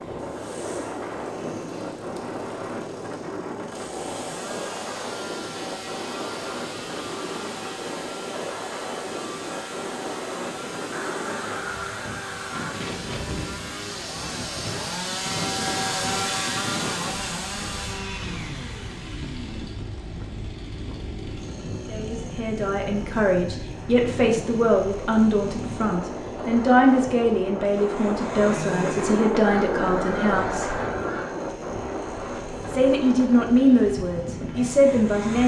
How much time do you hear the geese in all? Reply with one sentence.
You can hear the geese for 4 seconds altogether.